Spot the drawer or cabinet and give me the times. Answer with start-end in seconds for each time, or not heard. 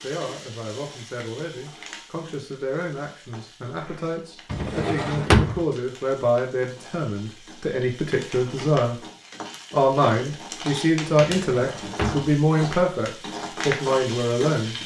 4.5-5.6, 11.3-12.3.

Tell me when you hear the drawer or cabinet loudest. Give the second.
5 s.